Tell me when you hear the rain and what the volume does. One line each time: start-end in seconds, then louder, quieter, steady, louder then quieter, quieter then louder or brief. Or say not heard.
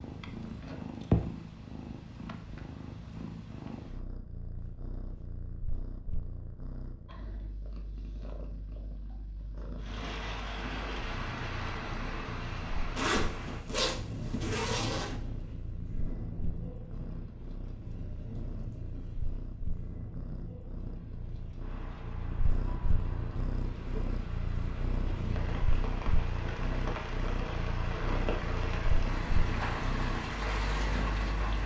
9.8-31.6 quieter then louder.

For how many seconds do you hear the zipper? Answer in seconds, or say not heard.
2 s.